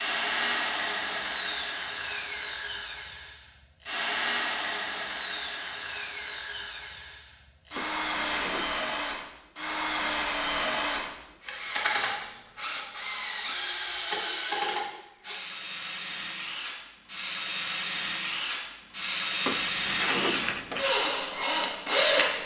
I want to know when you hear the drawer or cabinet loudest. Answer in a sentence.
The volume of the drawer or cabinet peaks at 20 seconds.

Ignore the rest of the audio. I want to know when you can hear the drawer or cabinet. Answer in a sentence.
The drawer or cabinet can be heard from 7.7 to 8.8 s and from 19.4 to 20.9 s.